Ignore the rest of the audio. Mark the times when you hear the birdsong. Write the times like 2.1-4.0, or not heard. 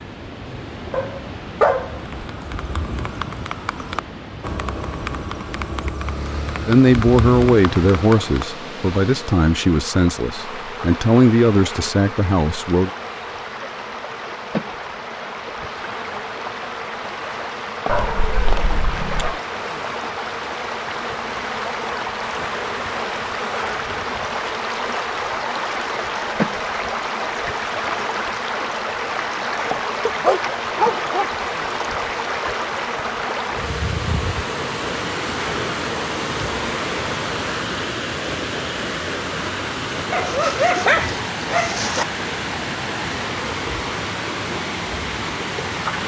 not heard.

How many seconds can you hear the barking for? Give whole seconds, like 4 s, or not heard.
6 s.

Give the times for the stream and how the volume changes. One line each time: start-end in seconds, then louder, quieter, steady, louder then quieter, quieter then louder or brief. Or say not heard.
0.0-46.0 louder.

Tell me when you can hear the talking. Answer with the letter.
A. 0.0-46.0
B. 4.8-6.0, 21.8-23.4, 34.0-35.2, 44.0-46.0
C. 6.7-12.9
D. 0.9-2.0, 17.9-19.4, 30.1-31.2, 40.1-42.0
C.